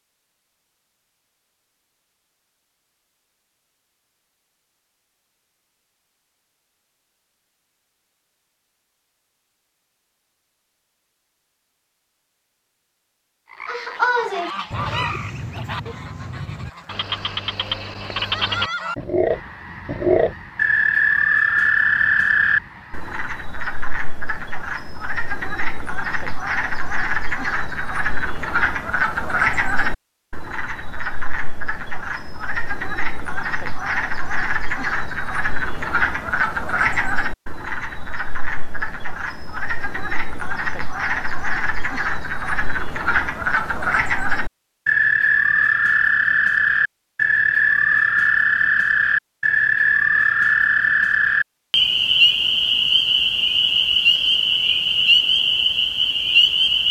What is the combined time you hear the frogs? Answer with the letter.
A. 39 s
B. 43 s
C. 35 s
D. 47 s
B.